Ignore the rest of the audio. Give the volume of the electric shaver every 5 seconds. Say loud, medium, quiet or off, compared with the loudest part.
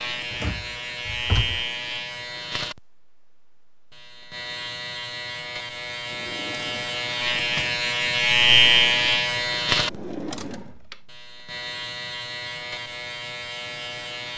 medium, loud, quiet.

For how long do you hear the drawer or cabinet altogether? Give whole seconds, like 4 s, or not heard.
4 s.